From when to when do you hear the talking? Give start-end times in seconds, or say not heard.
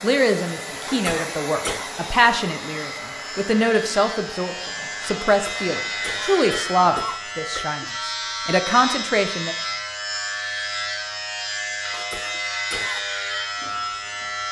0.0-9.6.